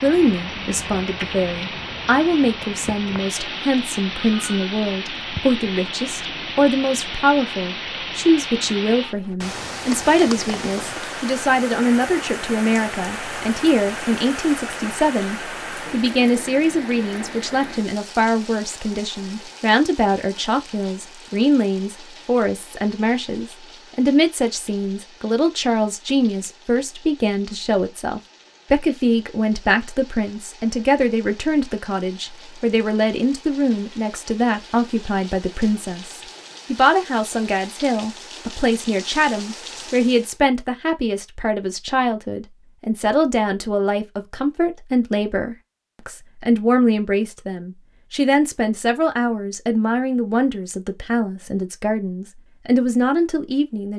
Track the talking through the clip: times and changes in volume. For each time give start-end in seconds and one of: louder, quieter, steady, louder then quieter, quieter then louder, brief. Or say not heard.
0.0-53.9 steady.